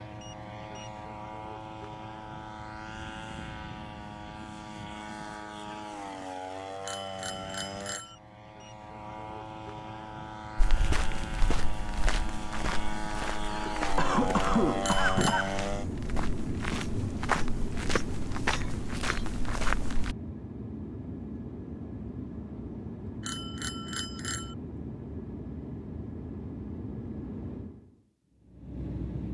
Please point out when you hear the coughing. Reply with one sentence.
The coughing can be heard from 13.4 to 15.6 s.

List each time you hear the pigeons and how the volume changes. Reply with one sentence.
The pigeons can't be heard in this clip.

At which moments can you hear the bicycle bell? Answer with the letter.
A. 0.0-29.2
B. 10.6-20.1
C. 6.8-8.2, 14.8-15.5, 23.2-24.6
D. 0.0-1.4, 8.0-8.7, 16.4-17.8
C.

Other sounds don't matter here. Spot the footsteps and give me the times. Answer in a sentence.
The footsteps can be heard from 10.6 to 20.1 s.